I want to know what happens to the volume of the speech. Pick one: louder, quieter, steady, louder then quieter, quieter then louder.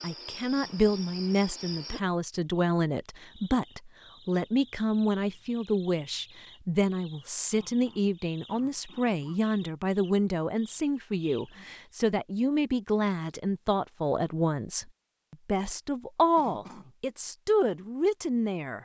steady.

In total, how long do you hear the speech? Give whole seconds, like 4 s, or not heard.
19 s.